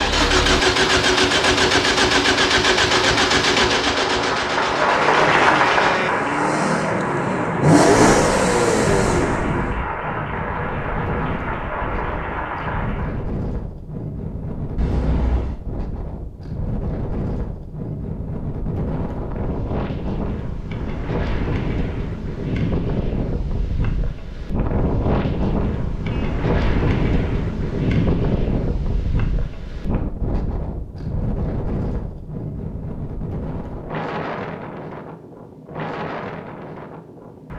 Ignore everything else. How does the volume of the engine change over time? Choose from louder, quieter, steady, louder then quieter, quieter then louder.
quieter then louder.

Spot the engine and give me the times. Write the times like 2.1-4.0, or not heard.
0.0-9.9.